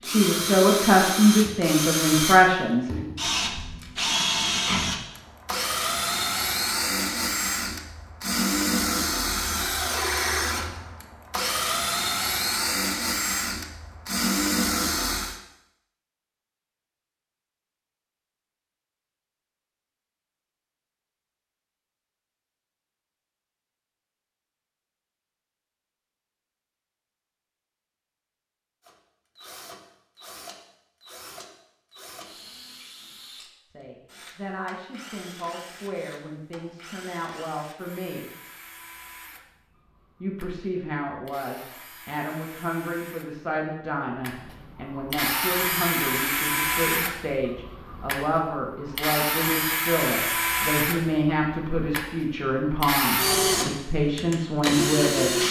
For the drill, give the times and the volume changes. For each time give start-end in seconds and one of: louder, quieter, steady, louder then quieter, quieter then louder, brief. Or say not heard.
0.0-15.4 steady
28.8-55.4 louder.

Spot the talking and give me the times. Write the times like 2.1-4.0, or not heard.
0.0-2.9, 33.7-38.3, 40.2-55.3.